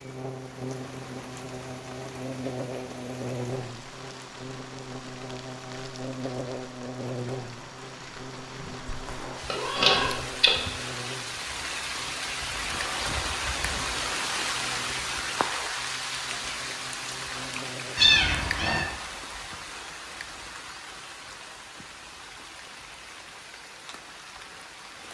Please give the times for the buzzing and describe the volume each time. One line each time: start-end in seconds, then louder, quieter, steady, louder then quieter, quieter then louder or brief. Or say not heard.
0.0-17.9 quieter.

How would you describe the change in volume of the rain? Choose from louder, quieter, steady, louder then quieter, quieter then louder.
louder then quieter.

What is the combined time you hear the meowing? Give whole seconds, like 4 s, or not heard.
2 s.